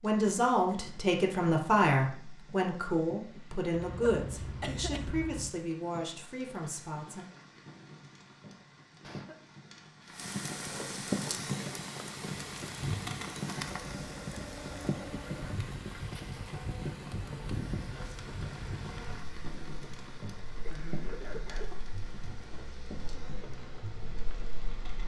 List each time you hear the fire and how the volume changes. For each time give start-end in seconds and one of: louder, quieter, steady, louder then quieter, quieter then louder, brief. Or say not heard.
0.0-25.0 louder then quieter.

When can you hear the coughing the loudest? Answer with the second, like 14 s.
5 s.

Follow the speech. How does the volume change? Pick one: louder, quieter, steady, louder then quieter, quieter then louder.
quieter.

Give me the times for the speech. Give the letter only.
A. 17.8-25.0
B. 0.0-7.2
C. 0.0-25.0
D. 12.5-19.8
B.